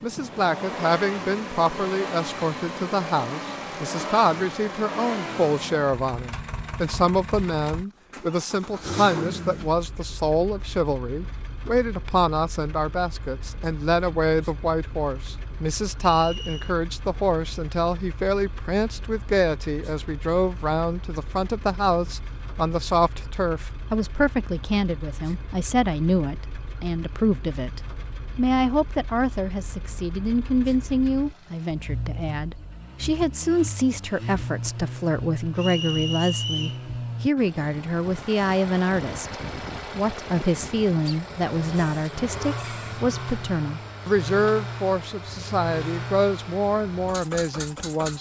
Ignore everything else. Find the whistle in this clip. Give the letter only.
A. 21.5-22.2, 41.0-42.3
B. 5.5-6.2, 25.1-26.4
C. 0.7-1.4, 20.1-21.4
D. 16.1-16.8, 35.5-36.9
D.